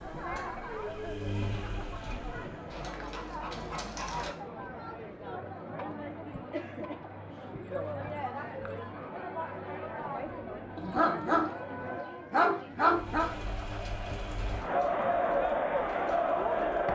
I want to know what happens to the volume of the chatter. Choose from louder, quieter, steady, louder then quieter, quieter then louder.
louder.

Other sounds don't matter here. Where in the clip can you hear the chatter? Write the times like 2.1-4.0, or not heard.
0.0-16.9.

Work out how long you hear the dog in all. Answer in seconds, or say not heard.
4 s.